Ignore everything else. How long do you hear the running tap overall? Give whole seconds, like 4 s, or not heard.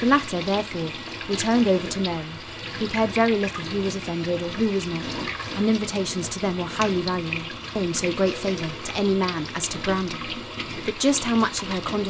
12 s.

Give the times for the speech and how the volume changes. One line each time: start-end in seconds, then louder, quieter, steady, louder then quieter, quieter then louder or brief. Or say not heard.
0.0-12.0 steady.